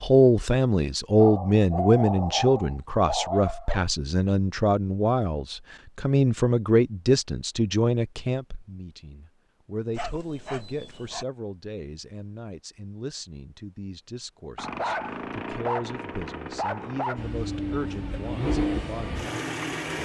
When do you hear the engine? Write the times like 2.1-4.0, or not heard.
17.1-20.0.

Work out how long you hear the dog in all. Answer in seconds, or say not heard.
7 s.